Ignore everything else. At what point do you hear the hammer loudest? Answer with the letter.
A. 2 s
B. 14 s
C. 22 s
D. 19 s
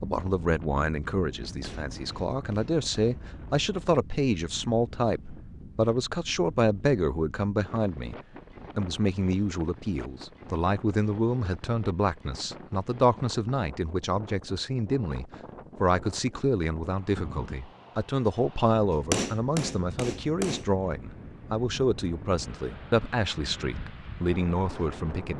D.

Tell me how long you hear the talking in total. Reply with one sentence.
You can hear the talking for 25 seconds altogether.